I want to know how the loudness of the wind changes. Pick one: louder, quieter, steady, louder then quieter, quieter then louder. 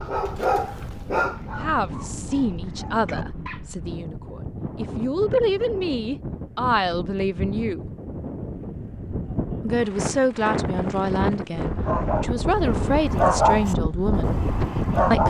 louder.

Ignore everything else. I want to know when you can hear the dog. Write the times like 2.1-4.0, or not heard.
0.0-3.6, 11.7-15.2.